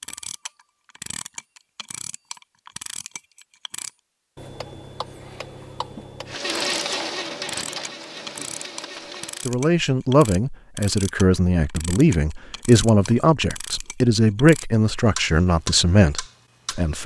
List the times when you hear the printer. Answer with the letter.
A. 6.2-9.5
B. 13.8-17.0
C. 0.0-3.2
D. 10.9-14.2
A.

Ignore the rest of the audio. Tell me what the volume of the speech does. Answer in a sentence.
The volume of the speech stays about the same.